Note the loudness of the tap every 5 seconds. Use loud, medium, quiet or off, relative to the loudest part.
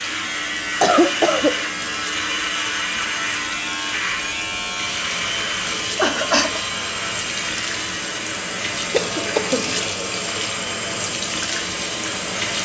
medium, loud, loud.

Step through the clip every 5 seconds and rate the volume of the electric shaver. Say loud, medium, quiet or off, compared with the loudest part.
loud, loud, medium.